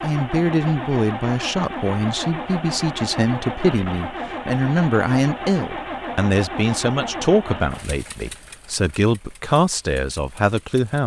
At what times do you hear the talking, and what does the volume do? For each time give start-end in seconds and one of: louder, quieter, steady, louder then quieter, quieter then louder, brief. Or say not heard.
0.0-11.0 steady.